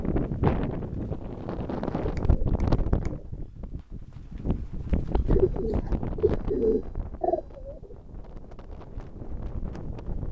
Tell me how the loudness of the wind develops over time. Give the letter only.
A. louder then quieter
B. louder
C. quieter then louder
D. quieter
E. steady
D.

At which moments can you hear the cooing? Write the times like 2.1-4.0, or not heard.
1.9-3.2, 5.2-8.0.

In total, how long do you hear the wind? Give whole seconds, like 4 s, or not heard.
10 s.